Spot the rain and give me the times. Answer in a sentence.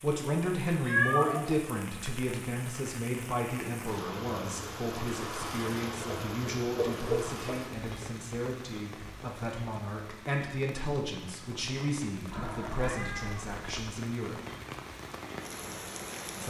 You can hear the rain from 0.0 to 16.4 s.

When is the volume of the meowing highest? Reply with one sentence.
The volume of the meowing peaks at 1 second.